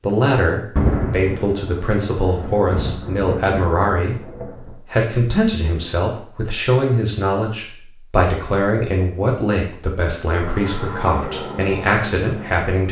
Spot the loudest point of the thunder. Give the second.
1 s.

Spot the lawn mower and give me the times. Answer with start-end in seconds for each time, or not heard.
10.4-12.8.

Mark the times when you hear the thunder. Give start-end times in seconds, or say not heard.
0.8-4.8.